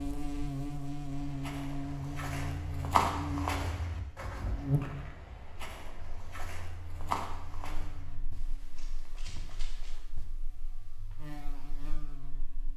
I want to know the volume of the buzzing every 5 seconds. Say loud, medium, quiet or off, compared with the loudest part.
loud, quiet, quiet.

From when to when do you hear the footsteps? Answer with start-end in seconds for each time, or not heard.
1.1-10.2.